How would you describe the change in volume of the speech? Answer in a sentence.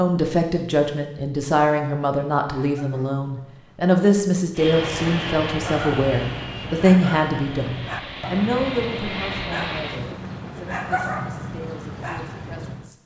The loudness of the speech goes down.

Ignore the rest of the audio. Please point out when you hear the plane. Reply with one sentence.
The plane can be heard from 4.5 to 10.2 s.